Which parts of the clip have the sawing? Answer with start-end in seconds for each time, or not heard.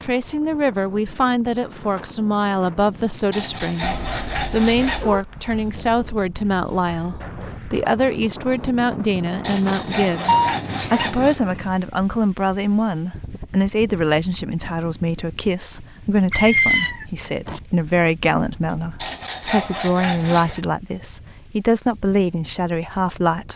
3.3-5.1, 9.4-11.4, 19.0-20.6.